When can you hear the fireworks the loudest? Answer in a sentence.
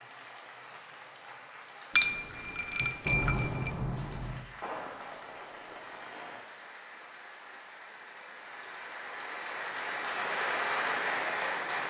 The loudest moment of the fireworks is at 3 seconds.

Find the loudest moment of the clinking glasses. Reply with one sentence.
The loudest moment of the clinking glasses is at 2 seconds.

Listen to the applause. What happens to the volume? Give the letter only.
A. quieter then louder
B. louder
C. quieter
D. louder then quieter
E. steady
B.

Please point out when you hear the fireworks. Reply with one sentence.
You can hear the fireworks from 2.8 to 6.5 s.